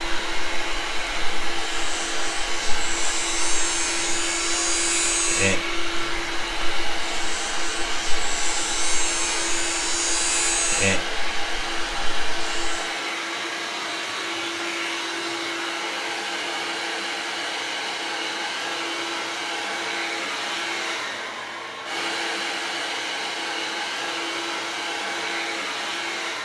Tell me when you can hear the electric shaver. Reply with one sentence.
The electric shaver can be heard from 0.0 to 12.9 s.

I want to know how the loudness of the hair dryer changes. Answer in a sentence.
The volume of the hair dryer stays about the same.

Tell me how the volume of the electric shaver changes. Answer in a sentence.
The loudness of the electric shaver goes up.